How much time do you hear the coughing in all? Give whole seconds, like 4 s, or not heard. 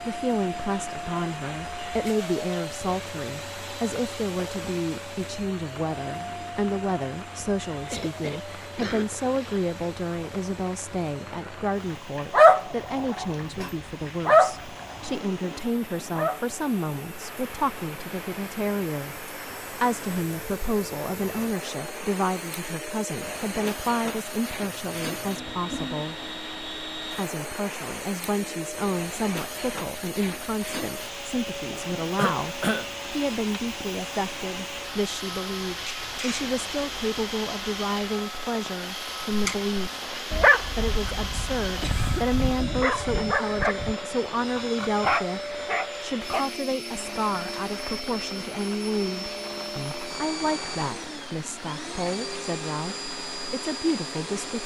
3 s.